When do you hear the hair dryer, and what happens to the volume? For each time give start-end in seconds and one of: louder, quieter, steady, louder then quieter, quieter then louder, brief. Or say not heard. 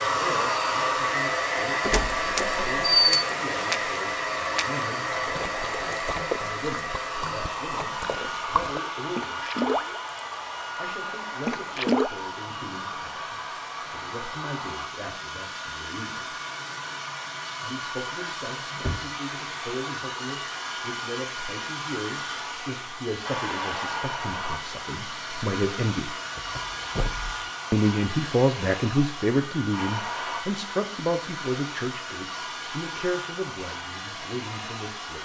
0.0-35.1 quieter.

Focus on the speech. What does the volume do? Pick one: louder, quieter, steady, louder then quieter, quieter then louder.
louder.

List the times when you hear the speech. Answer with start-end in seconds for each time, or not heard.
0.0-9.8, 10.8-16.4, 17.6-26.1, 27.7-35.1.